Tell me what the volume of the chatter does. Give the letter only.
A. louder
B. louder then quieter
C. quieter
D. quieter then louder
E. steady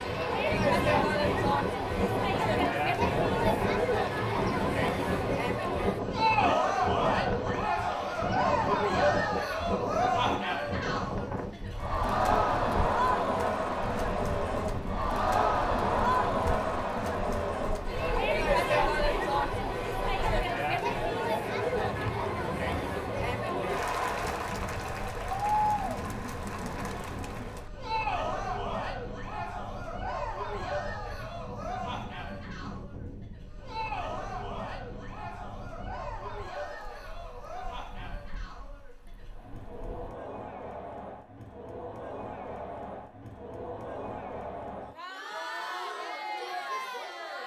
C.